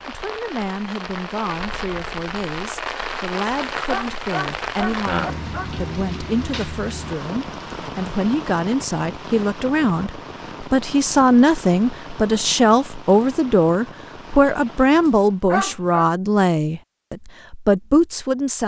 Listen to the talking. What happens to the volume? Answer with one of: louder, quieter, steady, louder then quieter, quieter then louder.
louder.